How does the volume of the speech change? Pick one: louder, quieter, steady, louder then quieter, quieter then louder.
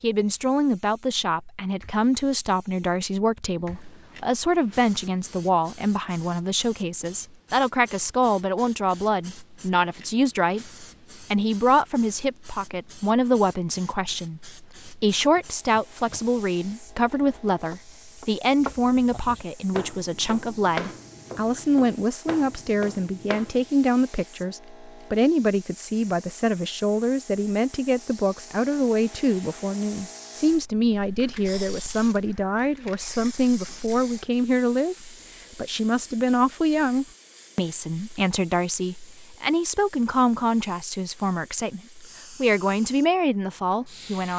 steady.